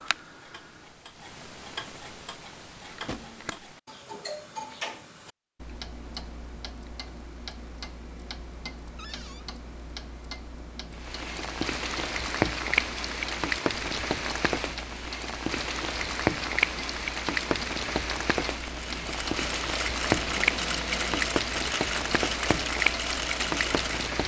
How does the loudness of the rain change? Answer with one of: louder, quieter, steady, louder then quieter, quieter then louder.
steady.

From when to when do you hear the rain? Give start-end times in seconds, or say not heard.
10.9-24.2.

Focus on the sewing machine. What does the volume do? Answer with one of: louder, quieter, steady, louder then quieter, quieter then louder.
steady.